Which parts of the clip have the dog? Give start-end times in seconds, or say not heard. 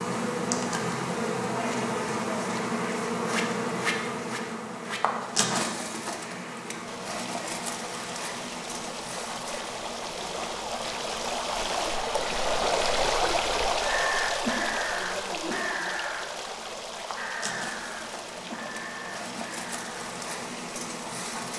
not heard.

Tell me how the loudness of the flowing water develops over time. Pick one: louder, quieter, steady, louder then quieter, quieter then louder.
louder then quieter.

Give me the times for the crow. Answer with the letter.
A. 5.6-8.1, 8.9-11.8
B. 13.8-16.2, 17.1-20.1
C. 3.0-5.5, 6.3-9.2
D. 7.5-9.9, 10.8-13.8
B.